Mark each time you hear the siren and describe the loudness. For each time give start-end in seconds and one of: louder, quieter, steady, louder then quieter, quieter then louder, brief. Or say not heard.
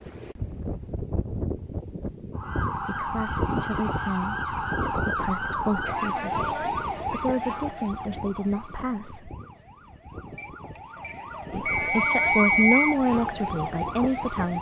2.4-14.5 quieter then louder.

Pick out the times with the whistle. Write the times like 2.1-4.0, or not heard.
11.7-12.9.